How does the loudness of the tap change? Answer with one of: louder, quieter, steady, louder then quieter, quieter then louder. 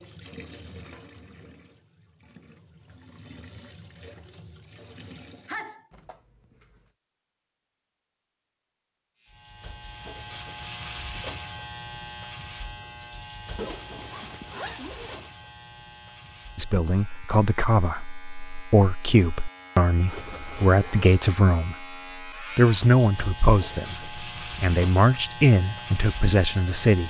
quieter then louder.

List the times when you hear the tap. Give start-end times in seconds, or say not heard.
0.0-5.7.